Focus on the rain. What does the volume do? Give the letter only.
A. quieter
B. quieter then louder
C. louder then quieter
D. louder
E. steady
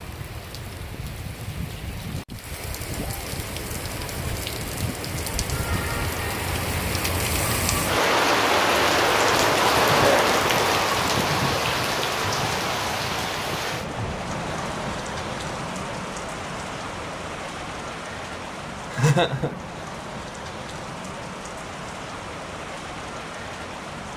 C.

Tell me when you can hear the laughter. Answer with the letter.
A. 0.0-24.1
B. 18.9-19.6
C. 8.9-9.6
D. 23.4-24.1
B.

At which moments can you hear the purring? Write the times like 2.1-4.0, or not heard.
not heard.